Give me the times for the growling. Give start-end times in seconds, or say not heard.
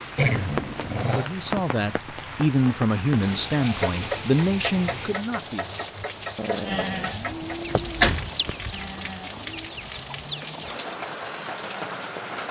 0.1-1.3, 6.3-7.7.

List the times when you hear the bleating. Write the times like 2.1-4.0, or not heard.
6.7-9.8.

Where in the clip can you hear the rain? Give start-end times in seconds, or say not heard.
0.0-12.4.